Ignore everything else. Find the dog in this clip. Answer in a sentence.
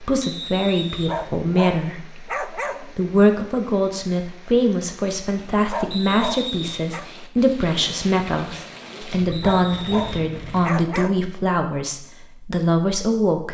The dog can be heard from 0.9 to 3.0 s, from 5.5 to 7.0 s and from 9.2 to 11.3 s.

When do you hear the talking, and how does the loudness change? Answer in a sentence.
You can hear the talking from 0.0 to 13.5 s, at a steady volume.